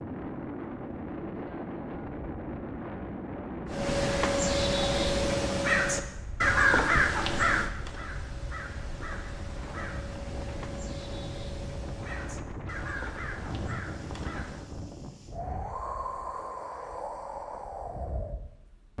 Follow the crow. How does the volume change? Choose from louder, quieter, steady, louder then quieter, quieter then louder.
quieter.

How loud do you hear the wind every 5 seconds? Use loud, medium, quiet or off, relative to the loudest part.
loud, medium, loud, loud.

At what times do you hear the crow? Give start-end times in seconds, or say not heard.
3.7-14.8.